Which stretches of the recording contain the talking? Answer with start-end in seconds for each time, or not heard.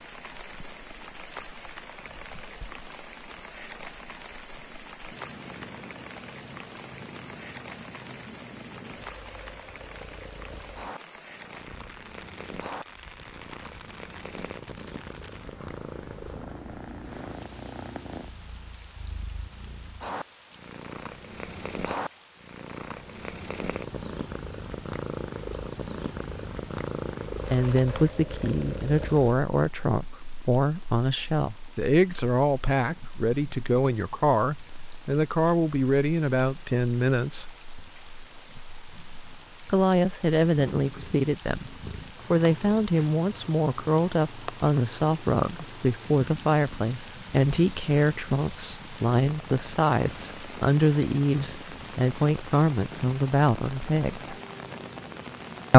27.5-37.5, 39.6-54.3.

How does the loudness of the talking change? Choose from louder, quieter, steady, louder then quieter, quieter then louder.
steady.